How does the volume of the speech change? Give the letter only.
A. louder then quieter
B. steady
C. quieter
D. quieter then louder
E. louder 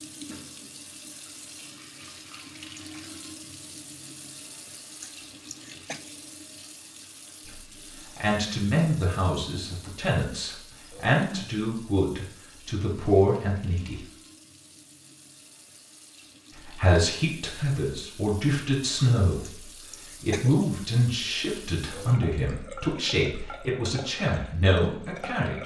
B.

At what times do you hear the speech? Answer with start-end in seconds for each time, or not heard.
7.5-14.0, 16.6-25.6.